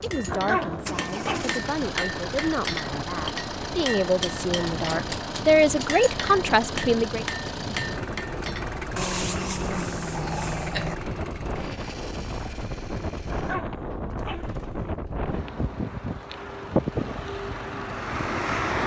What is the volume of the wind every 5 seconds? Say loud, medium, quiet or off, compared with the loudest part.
medium, medium, medium, loud.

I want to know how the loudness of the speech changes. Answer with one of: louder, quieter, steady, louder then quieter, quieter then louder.
louder.